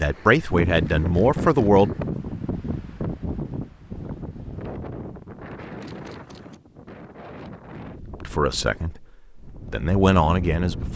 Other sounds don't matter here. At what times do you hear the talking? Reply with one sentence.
The talking can be heard from 0.0 to 1.9 s and from 8.2 to 10.9 s.